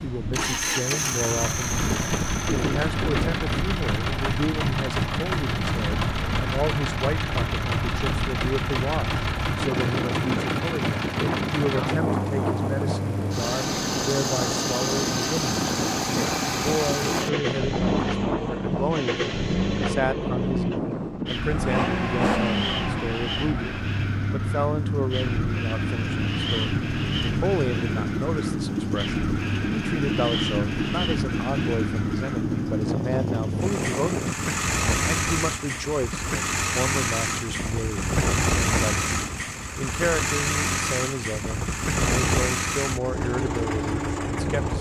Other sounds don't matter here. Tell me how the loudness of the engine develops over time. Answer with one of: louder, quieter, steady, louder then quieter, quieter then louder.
steady.